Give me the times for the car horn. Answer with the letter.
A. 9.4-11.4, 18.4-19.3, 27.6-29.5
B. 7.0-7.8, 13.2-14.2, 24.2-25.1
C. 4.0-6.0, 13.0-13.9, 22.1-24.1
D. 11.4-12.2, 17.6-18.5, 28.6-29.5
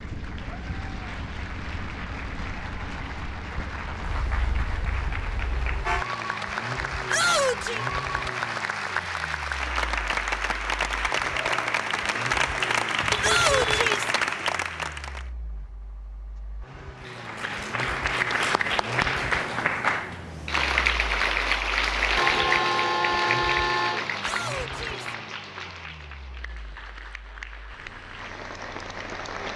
C.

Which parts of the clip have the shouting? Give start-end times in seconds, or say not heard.
7.0-7.8, 13.2-14.2, 24.2-25.1.